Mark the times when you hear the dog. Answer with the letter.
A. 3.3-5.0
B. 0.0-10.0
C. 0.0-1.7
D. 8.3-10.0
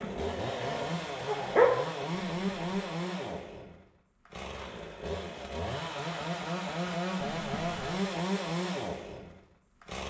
C.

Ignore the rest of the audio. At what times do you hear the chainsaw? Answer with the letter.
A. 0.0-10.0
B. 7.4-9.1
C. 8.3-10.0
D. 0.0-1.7
A.